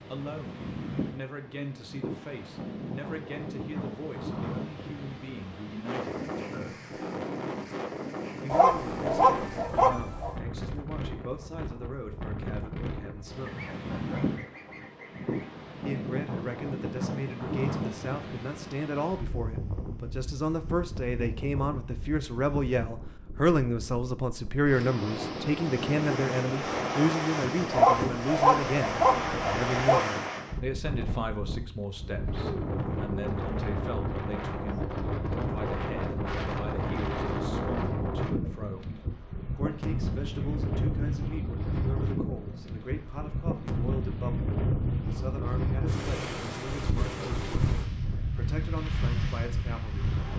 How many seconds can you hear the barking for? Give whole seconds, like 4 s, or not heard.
4 s.